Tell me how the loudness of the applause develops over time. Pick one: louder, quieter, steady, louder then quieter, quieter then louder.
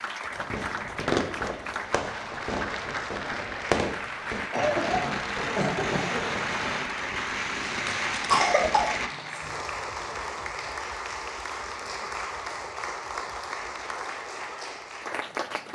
steady.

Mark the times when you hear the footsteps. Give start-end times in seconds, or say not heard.
not heard.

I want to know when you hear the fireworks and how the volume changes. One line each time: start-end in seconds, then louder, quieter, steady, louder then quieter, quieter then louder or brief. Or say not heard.
0.3-9.1 steady.